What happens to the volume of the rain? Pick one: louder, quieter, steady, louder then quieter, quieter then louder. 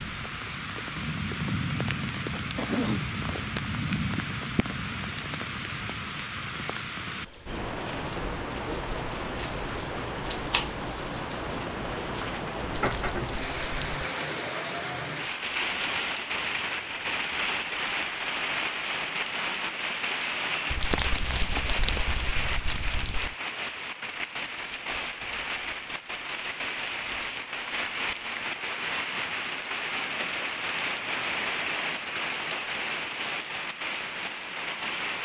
steady.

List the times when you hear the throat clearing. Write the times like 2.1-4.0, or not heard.
2.3-3.5.